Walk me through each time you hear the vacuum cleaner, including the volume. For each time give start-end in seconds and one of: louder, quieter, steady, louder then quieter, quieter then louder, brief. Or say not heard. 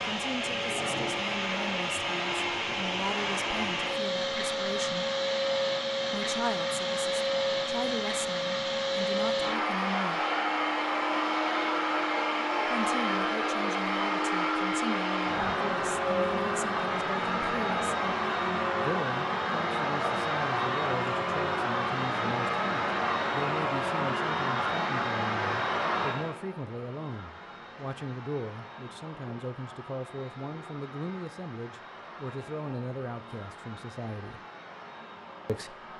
0.0-35.9 quieter.